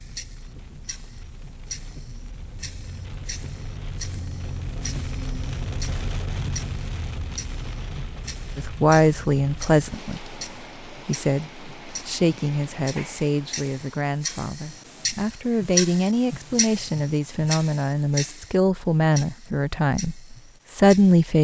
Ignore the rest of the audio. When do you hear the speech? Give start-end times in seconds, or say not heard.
8.6-10.3, 11.1-21.3.